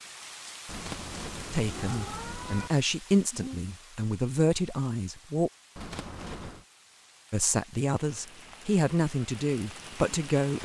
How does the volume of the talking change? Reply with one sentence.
The loudness of the talking stays about the same.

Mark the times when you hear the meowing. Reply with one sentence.
You can hear the meowing from 0.7 to 2.7 s and from 5.8 to 6.7 s.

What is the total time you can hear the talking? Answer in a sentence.
The talking can be heard for 7 seconds in total.